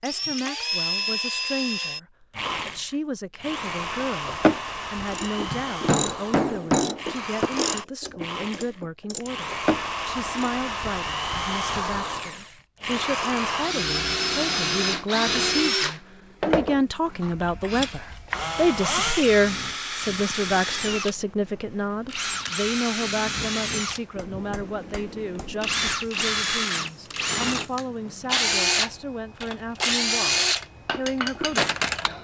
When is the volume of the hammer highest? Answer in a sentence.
The volume of the hammer peaks at 7 seconds.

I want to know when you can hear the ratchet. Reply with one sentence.
You can hear the ratchet from 4.2 to 10.5 s.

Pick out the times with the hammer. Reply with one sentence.
You can hear the hammer from 5.5 to 7.5 s and from 24.1 to 25.9 s.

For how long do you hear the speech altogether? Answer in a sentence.
You can hear the speech for 32 seconds altogether.